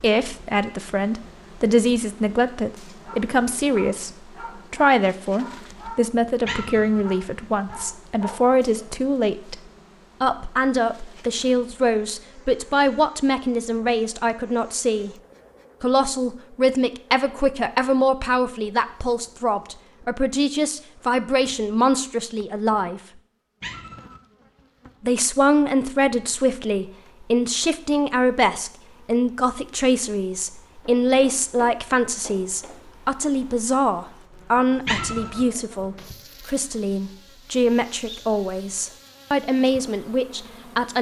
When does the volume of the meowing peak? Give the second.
35 s.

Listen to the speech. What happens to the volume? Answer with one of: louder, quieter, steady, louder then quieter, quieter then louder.
steady.